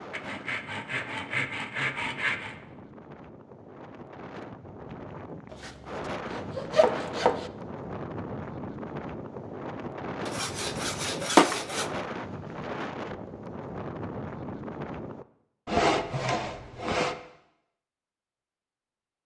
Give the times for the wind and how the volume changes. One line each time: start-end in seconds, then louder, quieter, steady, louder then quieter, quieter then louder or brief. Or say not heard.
0.0-15.2 louder.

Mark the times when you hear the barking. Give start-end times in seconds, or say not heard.
not heard.